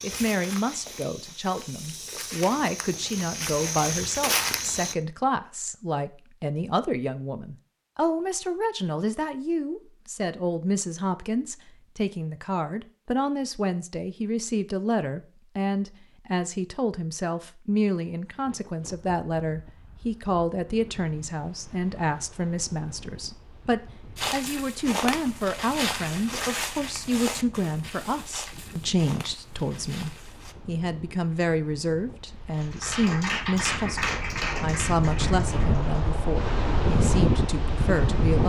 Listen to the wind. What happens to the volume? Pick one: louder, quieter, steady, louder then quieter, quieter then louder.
louder.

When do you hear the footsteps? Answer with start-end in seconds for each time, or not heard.
0.0-5.0, 24.1-30.6.